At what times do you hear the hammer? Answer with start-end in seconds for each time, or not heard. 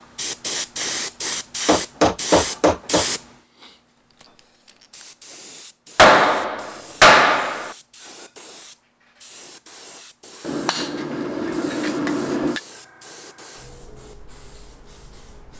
1.6-3.0, 6.0-7.7, 10.4-12.6.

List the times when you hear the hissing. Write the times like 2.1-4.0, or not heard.
0.1-15.5.